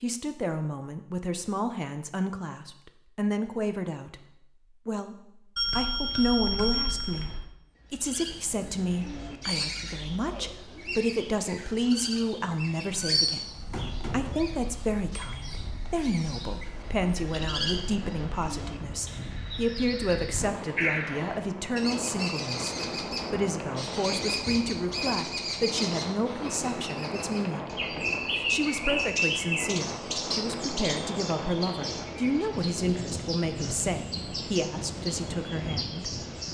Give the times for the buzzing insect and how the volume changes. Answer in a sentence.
The buzzing insect can't be heard in this clip.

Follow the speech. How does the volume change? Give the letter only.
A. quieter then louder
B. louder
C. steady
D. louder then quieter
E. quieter
C.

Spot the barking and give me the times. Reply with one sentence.
You can't hear the barking here.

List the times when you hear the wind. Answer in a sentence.
The wind can be heard from 13.6 to 36.4 s.